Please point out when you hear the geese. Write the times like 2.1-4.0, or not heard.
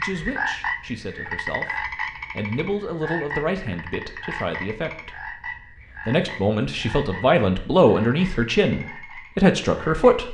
not heard.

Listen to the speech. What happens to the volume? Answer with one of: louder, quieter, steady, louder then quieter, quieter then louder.
louder.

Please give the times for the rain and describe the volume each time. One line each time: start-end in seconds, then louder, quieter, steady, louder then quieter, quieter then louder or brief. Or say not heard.
not heard.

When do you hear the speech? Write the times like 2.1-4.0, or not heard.
0.0-5.3, 6.0-10.2.